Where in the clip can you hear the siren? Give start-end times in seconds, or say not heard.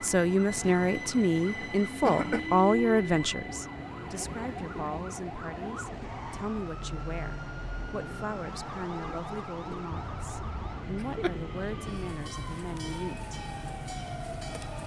0.0-14.8.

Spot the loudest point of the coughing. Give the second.
2 s.